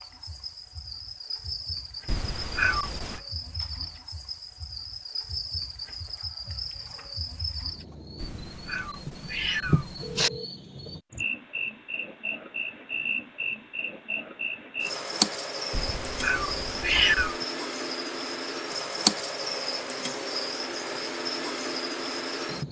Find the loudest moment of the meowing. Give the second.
17 s.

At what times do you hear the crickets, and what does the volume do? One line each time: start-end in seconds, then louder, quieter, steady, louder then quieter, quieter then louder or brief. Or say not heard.
0.0-22.6 louder.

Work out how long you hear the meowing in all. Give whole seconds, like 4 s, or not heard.
5 s.